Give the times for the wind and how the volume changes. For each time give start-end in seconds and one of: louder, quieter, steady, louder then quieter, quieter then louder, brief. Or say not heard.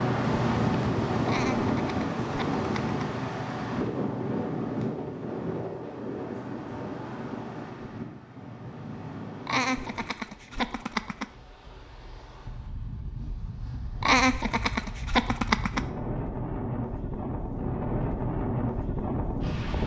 0.0-19.8 quieter then louder.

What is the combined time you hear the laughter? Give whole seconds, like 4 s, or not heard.
5 s.